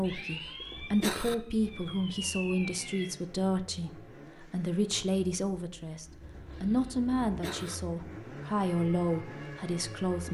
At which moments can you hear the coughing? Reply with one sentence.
You can hear the coughing from 0.1 to 1.4 s and from 6.5 to 7.8 s.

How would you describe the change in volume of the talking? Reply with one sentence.
The volume of the talking stays about the same.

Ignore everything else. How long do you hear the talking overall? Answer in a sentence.
You can hear the talking for 10 seconds altogether.